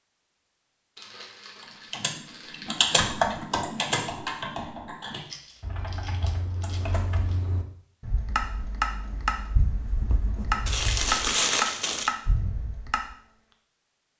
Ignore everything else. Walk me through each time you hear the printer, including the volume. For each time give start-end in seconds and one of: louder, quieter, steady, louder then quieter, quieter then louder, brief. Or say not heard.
not heard.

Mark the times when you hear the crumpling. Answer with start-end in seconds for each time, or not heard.
0.9-2.9, 5.2-7.4, 10.7-12.1.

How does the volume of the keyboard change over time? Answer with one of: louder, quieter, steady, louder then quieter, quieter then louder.
quieter then louder.